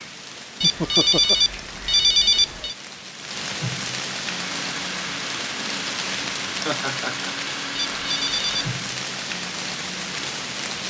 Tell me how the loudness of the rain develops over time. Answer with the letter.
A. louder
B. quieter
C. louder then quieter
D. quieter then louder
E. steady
A.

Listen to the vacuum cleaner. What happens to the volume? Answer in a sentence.
The volume of the vacuum cleaner stays about the same.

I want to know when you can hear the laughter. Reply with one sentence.
You can hear the laughter from 0.6 to 1.4 s and from 6.7 to 7.3 s.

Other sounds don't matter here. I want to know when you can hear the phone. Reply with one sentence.
You can hear the phone from 0.6 to 2.8 s and from 7.9 to 8.7 s.